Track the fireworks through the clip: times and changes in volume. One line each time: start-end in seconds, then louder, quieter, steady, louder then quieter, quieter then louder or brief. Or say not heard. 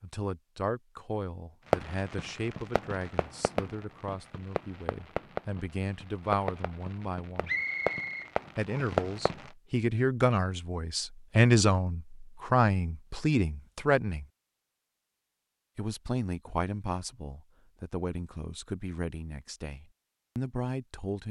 1.7-9.5 louder.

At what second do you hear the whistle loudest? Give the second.
8 s.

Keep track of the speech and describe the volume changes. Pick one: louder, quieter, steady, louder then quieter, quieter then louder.
louder then quieter.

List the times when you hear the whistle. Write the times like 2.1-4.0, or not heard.
7.5-9.1.